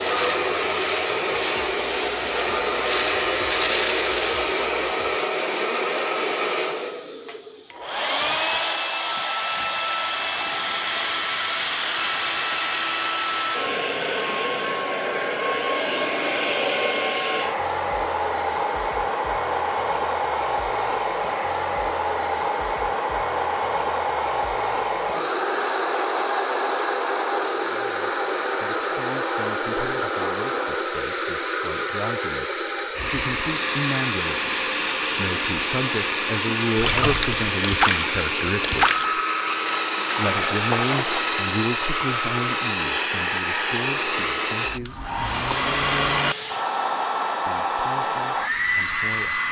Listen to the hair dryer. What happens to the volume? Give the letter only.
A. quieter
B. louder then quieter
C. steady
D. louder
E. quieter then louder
C.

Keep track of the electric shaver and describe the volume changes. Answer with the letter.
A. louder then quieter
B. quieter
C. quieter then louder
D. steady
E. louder
E.